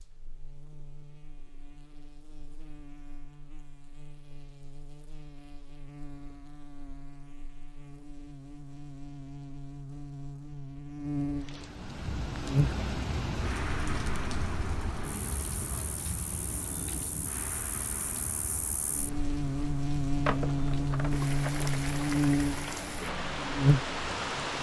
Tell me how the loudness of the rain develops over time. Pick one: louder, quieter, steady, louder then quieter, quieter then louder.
quieter then louder.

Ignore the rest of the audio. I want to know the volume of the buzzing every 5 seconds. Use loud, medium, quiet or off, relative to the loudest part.
quiet, quiet, medium, medium, loud.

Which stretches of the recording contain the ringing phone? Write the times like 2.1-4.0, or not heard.
20.2-21.7.